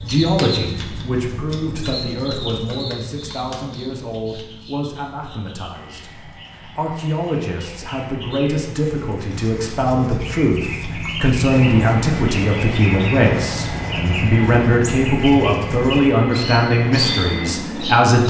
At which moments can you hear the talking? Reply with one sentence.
You can hear the talking from 0.0 to 18.2 s.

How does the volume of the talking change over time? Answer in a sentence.
The loudness of the talking goes up.